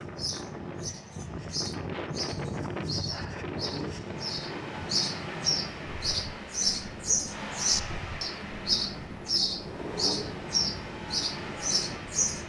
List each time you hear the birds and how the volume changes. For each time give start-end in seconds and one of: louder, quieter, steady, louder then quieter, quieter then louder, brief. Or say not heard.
0.0-12.4 louder.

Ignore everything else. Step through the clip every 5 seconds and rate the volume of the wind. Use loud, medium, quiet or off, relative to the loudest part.
loud, medium, medium.